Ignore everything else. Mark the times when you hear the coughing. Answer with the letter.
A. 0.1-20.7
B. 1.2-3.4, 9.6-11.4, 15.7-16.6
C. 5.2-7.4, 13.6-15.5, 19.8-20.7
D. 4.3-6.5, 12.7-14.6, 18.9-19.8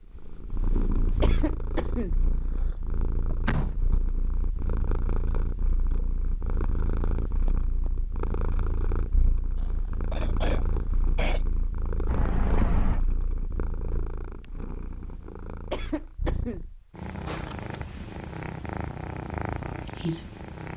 B.